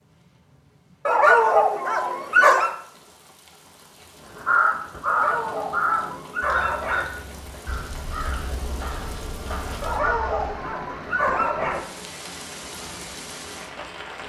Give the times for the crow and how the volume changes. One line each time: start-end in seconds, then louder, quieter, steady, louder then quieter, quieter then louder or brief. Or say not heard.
4.2-10.7 quieter.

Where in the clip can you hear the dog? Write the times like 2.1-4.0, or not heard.
1.1-2.7, 5.0-7.0, 9.8-11.8.